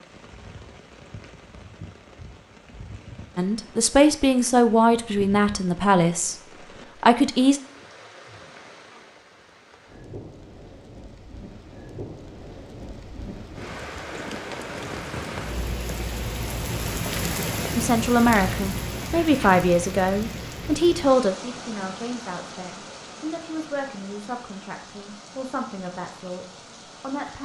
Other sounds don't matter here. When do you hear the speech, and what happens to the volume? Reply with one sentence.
The speech can be heard briefly from 3.4 to 6.3 s; briefly from 7.0 to 7.6 s; and from 17.8 to 27.4 s, getting quieter.